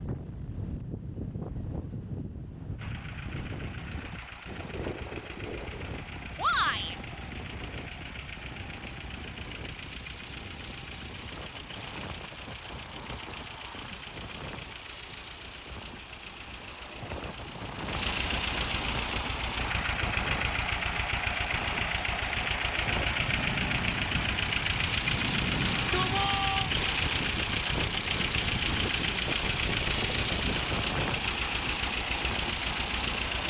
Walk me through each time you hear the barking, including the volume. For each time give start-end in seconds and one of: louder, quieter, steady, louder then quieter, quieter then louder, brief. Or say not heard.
not heard.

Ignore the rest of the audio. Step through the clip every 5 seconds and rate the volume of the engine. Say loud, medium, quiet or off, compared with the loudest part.
quiet, quiet, quiet, medium, loud, loud, loud.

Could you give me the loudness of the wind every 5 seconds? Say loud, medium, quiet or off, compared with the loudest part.
loud, medium, medium, medium, loud, loud, loud.